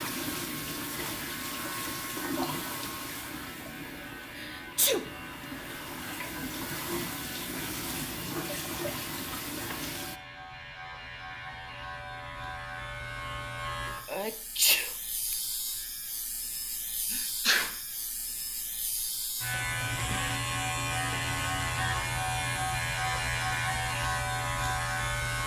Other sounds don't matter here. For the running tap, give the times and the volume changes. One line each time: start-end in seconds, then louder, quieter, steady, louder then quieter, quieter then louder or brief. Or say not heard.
0.0-10.2 quieter then louder.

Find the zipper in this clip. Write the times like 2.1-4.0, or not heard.
not heard.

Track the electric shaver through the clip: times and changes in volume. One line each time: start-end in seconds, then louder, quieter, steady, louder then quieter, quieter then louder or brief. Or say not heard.
0.0-25.4 louder.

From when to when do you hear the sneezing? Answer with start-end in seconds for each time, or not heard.
4.3-5.1, 14.1-15.3, 17.1-17.8.